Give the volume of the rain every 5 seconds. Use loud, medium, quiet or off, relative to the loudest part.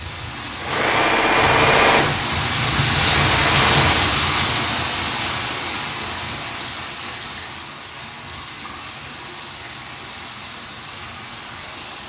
loud, medium, quiet.